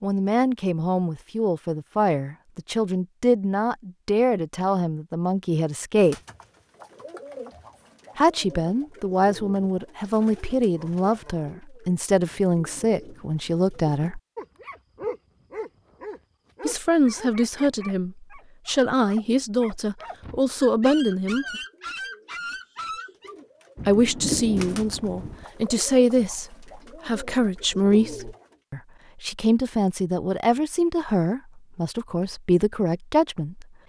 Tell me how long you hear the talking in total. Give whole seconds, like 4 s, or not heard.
27 s.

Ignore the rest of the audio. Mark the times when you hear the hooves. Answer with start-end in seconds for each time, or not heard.
not heard.